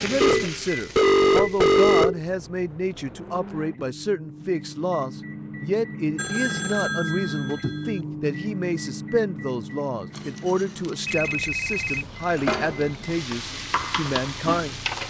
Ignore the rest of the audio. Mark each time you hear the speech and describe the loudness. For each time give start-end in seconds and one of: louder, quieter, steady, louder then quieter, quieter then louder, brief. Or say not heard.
0.0-14.8 steady.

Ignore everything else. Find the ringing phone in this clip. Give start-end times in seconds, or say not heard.
0.2-2.2, 6.2-7.9, 11.1-12.1.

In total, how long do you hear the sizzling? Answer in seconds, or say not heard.
7 s.